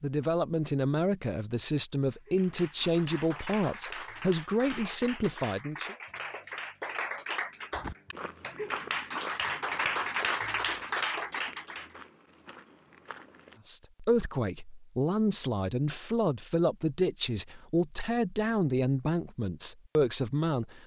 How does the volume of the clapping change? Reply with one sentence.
The loudness of the clapping goes up.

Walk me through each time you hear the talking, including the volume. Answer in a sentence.
The talking can be heard from 0.0 to 6.0 s, at a steady volume; and from 13.7 to 20.8 s, at a steady volume.